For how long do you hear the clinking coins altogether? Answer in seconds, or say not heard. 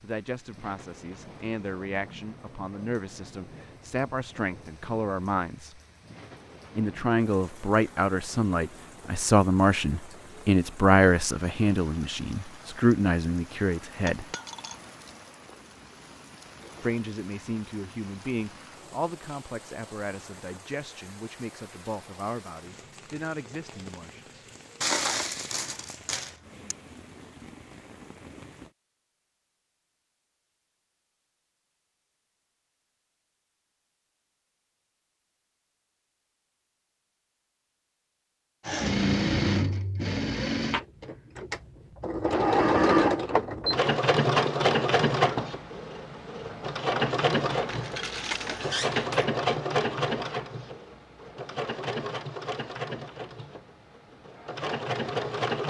4 s.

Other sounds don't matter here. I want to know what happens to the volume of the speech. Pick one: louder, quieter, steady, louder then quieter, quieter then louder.
louder then quieter.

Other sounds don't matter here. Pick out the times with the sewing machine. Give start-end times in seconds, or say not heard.
38.6-55.6.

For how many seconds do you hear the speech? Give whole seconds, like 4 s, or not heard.
21 s.